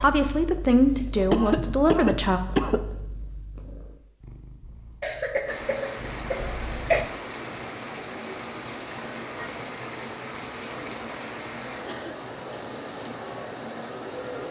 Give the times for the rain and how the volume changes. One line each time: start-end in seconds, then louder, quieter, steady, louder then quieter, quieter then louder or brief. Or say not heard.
5.5-14.4 steady.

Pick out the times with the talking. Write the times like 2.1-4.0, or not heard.
0.0-2.4.